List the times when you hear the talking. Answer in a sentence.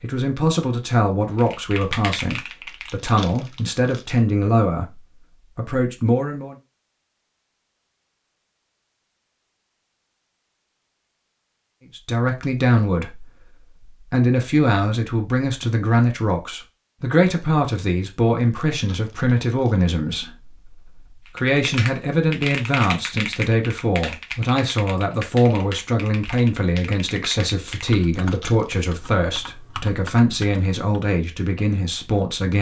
The talking can be heard from 0.0 to 6.5 s and from 11.9 to 32.5 s.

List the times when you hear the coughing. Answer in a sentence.
You can't hear the coughing here.